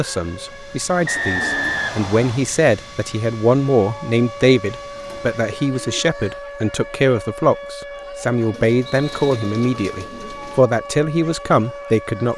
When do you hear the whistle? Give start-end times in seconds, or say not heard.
1.1-2.5, 8.8-9.4.